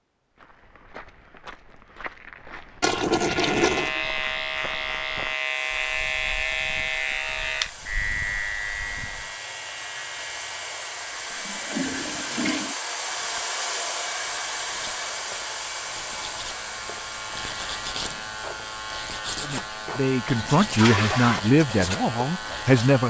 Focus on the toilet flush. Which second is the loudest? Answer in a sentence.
The volume of the toilet flush peaks at 3 seconds.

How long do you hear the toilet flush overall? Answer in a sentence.
You can hear the toilet flush for 4 seconds altogether.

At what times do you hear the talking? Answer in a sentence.
The talking can be heard from 19.4 to 23.0 s.